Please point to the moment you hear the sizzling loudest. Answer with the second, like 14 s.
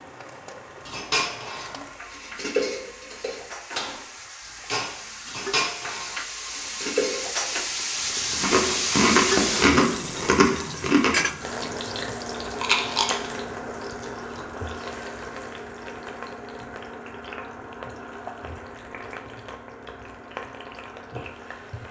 9 s.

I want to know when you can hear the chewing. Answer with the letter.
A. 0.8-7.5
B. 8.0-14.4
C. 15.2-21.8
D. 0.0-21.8
B.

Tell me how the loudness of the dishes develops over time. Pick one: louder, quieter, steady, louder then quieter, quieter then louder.
louder.